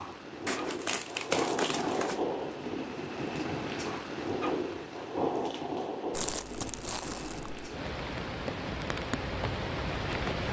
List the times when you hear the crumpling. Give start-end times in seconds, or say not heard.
0.5-2.2, 6.1-7.6.